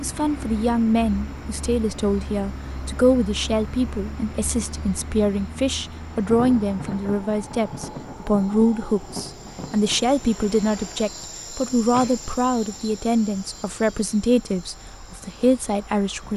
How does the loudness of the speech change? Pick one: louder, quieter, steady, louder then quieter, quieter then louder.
steady.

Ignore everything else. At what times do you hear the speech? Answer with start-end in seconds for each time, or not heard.
0.0-16.3.